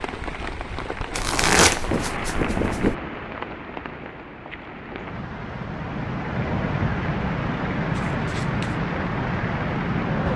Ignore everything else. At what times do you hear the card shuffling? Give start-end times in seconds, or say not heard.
1.1-3.0, 7.9-8.8.